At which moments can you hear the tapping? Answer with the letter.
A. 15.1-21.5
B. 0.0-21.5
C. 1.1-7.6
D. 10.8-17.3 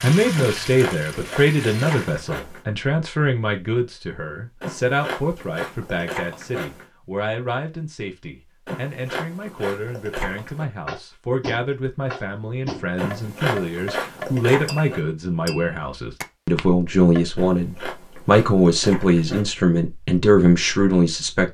D.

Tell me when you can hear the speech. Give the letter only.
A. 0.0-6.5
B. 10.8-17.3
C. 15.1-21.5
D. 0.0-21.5
D.